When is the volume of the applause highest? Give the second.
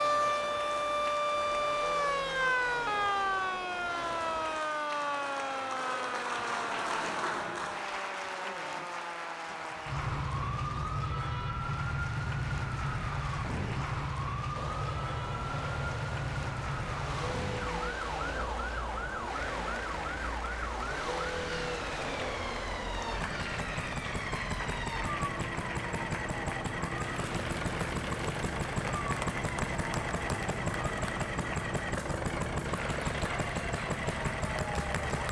7 s.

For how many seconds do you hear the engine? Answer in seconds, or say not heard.
25 s.